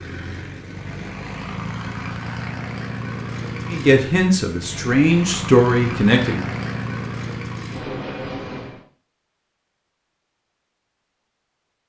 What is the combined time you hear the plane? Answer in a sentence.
The plane can be heard for 9 seconds in total.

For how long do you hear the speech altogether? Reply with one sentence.
The speech can be heard for 3 seconds in total.